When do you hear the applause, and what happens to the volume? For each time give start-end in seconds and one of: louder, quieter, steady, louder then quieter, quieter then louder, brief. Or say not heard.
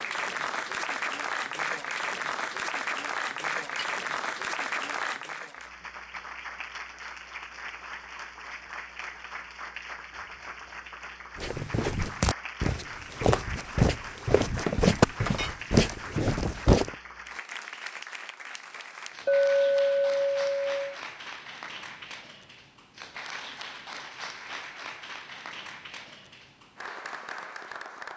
0.0-28.1 quieter.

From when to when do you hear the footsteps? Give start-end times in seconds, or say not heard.
11.3-16.9.